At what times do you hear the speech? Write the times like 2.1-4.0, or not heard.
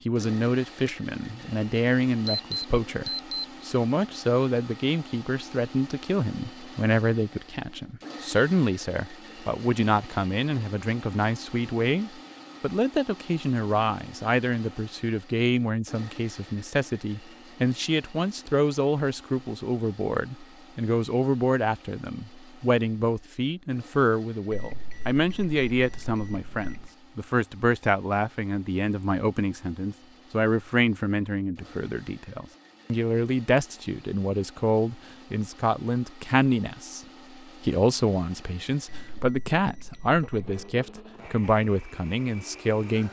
0.1-37.0, 37.6-43.0.